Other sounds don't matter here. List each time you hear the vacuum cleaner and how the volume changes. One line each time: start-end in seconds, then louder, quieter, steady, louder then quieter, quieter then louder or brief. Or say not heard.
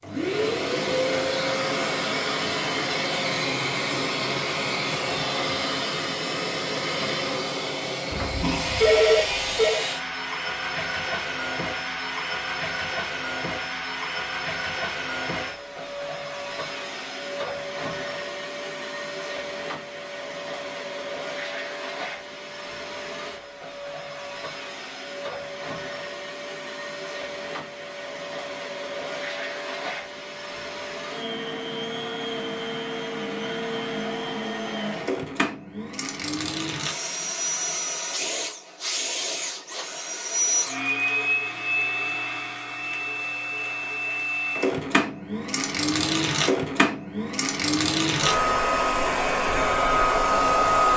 0.0-50.9 quieter then louder.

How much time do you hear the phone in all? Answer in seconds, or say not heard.
2 s.